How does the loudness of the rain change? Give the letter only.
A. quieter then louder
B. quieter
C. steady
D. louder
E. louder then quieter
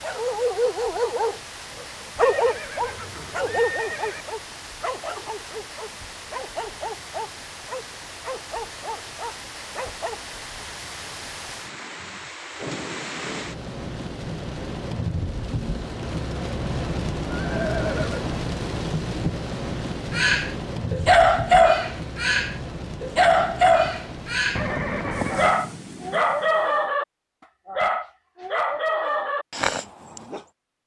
E.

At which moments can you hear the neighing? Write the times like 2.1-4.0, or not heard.
2.2-4.2, 17.4-18.4, 24.6-25.6.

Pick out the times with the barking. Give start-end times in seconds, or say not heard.
0.0-10.2, 20.1-24.7, 25.3-27.1, 27.6-30.4.